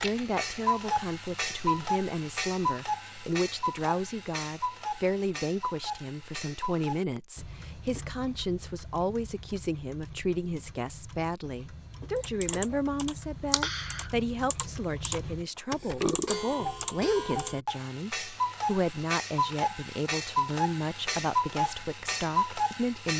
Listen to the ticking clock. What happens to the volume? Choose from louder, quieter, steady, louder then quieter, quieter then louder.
quieter then louder.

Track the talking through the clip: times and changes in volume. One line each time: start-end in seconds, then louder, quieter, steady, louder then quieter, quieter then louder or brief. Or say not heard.
0.0-23.1 steady.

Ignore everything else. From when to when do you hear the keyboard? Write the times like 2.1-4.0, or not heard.
12.2-17.6.